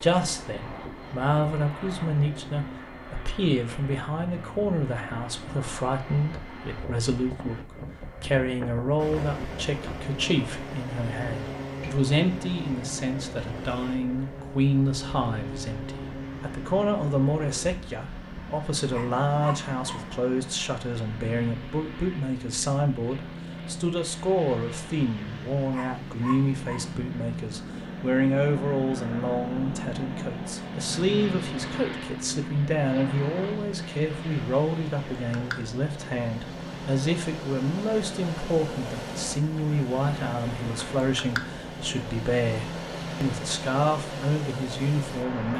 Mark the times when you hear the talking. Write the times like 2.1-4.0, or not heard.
0.0-45.5.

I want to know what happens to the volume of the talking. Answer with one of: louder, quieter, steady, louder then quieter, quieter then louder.
steady.